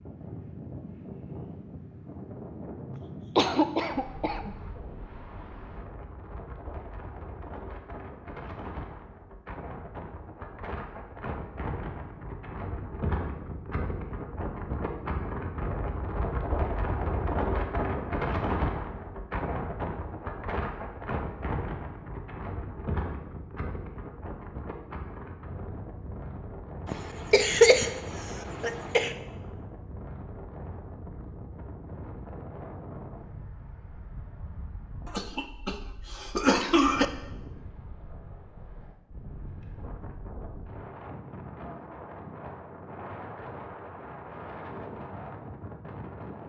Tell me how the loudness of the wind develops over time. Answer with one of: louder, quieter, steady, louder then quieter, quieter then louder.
louder then quieter.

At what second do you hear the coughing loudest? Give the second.
28 s.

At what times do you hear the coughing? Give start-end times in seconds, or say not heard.
3.4-4.5, 26.9-29.1, 35.0-37.0.